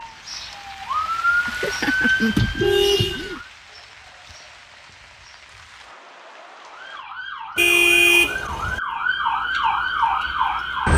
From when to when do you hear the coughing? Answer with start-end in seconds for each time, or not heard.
not heard.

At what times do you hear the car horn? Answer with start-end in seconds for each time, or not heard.
1.4-3.4, 7.5-8.8.